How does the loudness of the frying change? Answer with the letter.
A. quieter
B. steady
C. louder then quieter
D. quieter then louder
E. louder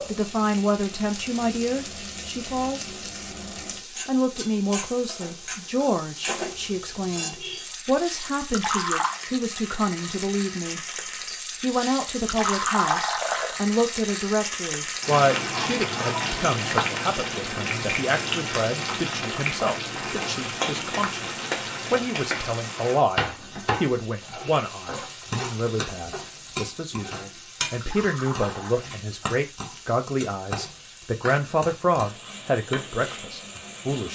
C.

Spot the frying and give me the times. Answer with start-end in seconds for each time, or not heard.
0.0-34.0.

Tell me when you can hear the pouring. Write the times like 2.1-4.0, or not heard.
8.4-9.2, 12.2-13.6, 27.8-28.9.